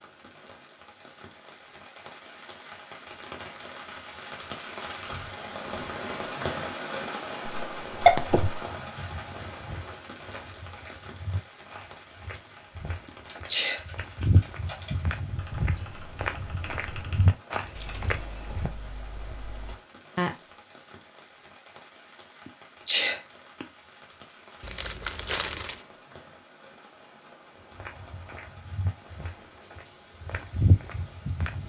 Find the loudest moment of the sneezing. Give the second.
8 s.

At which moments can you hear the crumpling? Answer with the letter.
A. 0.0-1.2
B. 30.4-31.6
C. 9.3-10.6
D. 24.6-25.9
D.